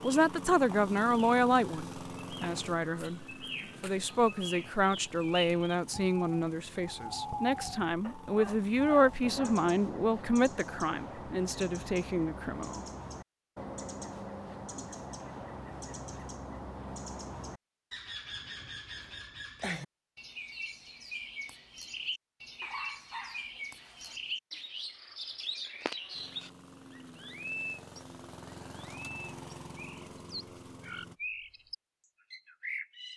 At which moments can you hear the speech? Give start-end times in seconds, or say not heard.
0.0-12.8.